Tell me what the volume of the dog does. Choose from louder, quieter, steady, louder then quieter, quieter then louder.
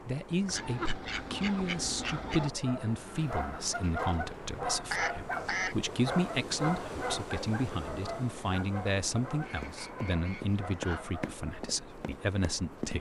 quieter.